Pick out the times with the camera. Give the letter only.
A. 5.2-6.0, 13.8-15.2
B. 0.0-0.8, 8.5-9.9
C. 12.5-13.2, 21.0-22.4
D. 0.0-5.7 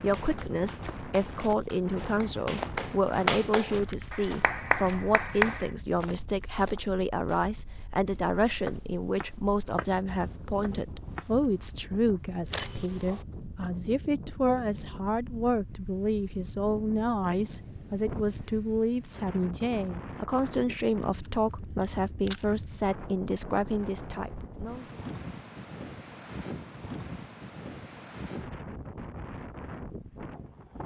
C.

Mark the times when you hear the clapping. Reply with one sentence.
The clapping can be heard from 0.0 to 5.7 s.